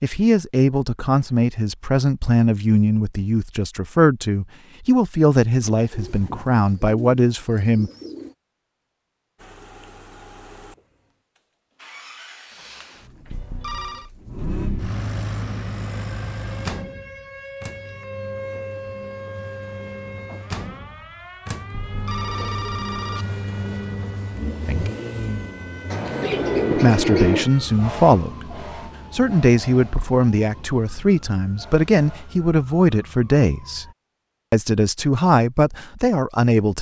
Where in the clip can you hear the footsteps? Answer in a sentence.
You can't hear the footsteps here.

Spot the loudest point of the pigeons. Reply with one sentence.
The volume of the pigeons peaks at 27 seconds.